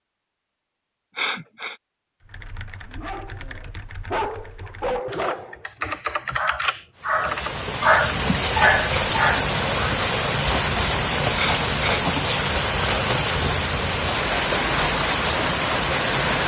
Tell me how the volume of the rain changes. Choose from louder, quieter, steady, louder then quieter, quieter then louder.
steady.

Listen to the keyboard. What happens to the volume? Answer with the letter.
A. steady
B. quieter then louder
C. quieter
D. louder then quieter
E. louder
E.